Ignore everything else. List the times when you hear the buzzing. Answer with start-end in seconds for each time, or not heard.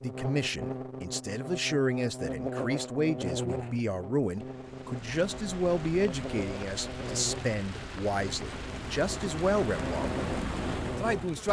0.0-11.4.